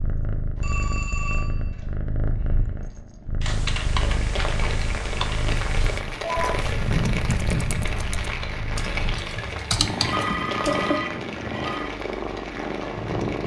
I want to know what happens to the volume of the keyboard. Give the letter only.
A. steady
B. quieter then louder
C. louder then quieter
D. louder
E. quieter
B.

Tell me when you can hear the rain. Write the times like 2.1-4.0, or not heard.
3.9-13.4.